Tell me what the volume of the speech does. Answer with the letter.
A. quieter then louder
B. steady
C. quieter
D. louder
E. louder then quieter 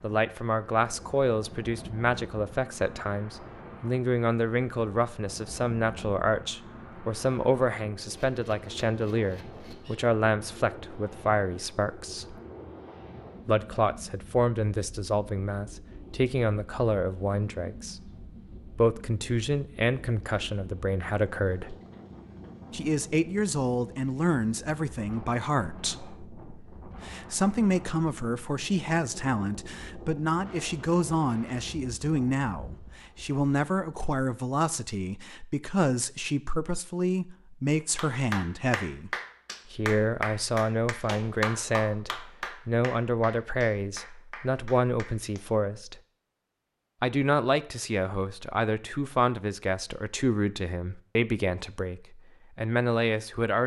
B.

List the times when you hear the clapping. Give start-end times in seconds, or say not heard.
38.0-45.5.